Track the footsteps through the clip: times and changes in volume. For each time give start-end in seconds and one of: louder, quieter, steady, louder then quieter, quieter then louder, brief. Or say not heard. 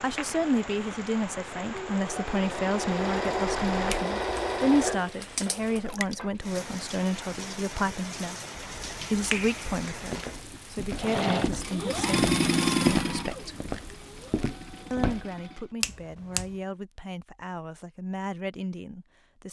10.1-15.2 louder then quieter.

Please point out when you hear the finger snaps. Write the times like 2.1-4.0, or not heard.
3.5-4.1, 8.6-10.2, 15.8-16.5.